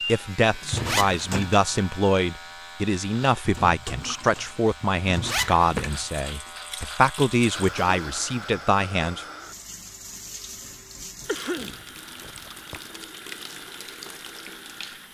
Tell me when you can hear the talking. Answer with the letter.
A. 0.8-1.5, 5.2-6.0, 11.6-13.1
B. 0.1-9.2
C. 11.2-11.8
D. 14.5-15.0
B.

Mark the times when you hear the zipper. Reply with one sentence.
You can hear the zipper from 0.8 to 1.5 s, from 5.2 to 6.0 s and from 11.6 to 13.1 s.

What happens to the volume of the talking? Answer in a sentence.
The loudness of the talking stays about the same.